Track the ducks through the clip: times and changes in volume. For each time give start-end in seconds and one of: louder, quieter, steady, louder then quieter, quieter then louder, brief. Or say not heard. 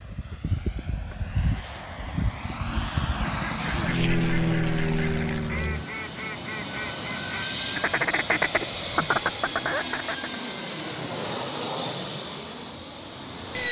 3.2-10.4 louder.